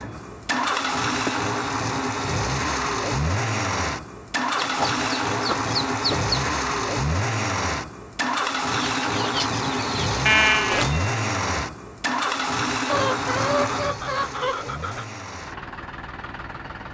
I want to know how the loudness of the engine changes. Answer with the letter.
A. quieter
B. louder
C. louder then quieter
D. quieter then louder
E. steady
A.